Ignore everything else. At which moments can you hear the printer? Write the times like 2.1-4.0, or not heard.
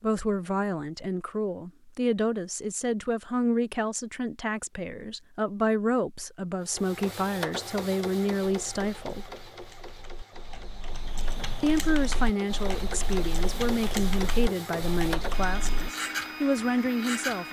6.7-17.4.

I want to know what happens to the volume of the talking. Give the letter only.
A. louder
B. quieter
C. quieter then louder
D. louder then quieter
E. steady
E.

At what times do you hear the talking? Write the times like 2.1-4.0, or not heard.
0.0-9.3, 11.6-17.4.